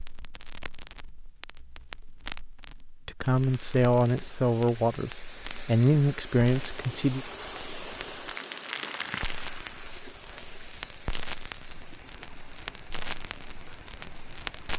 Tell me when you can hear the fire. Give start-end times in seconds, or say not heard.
0.0-14.7.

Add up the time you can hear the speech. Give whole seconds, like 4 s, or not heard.
4 s.